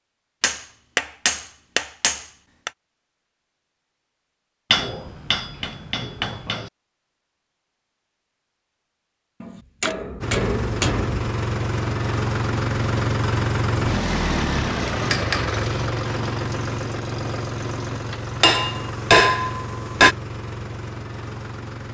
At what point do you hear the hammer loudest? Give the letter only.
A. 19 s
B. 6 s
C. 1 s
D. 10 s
A.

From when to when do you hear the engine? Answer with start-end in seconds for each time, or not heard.
10.2-21.9.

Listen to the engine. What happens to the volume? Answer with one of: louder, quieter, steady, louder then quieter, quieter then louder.
quieter.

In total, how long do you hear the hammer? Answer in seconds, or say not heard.
9 s.